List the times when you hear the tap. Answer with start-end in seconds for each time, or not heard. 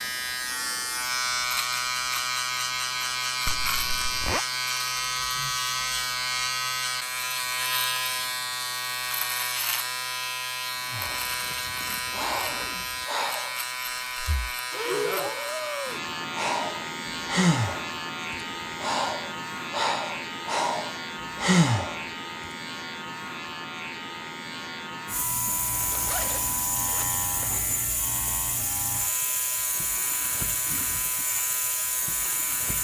25.1-32.7.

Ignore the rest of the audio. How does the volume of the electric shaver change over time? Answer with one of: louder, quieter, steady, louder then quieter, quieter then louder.
quieter.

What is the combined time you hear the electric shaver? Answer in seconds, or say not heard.
33 s.